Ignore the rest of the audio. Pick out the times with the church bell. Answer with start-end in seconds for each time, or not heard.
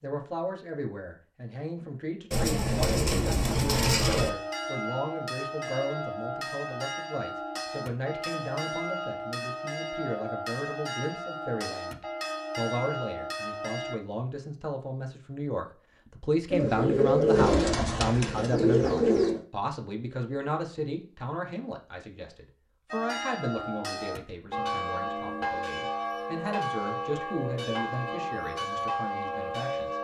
3.5-13.9, 22.9-29.9.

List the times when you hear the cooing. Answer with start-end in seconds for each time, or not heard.
2.3-4.3, 16.5-19.4.